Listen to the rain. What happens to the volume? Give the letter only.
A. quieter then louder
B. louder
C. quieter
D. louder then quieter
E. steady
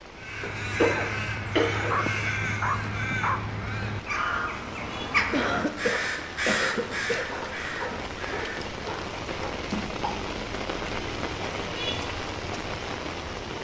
B.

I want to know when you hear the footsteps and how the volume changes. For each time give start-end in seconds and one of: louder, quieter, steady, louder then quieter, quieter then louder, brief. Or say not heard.
not heard.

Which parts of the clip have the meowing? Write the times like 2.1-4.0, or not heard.
not heard.